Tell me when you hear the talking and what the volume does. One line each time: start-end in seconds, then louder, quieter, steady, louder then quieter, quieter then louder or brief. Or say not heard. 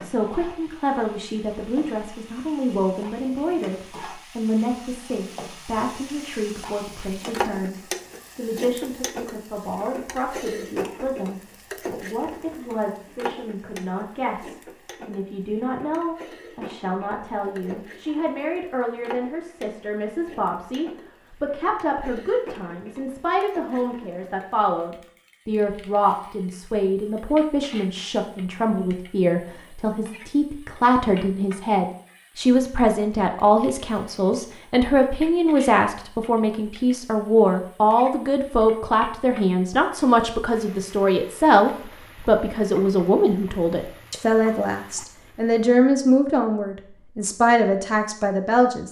0.0-48.8 louder.